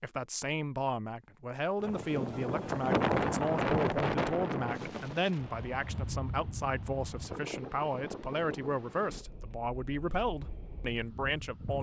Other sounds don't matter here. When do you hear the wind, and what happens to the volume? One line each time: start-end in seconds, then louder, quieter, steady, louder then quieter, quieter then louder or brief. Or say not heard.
1.8-11.7 quieter.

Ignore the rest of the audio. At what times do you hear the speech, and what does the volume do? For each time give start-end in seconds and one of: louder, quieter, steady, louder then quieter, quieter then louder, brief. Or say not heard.
0.0-11.7 steady.